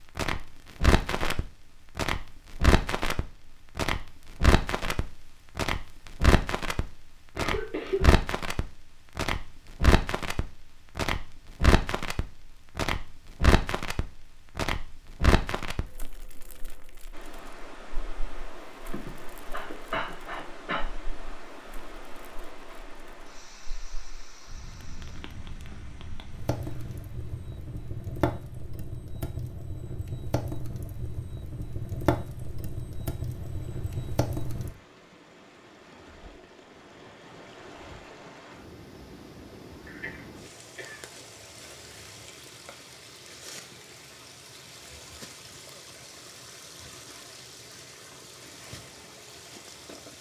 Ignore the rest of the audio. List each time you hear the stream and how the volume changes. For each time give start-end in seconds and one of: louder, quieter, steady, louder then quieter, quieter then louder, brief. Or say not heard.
17.1-50.1 quieter then louder.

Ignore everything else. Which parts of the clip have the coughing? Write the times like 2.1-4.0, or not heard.
7.3-8.1, 18.9-20.9, 39.9-41.0.